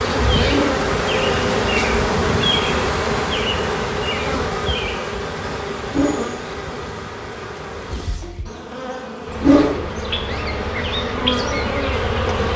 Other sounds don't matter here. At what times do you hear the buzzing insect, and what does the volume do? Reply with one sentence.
You can hear the buzzing insect from 0.0 to 12.5 s, getting quieter then louder.